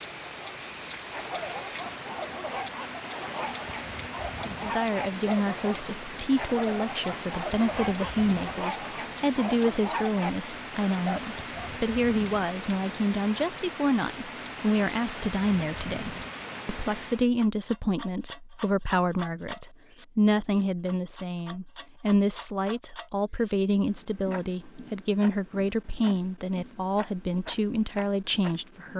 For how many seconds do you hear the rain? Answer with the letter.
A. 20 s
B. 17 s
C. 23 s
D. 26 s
B.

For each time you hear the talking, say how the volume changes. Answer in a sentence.
The talking can be heard from 4.6 to 28.9 s, at a steady volume.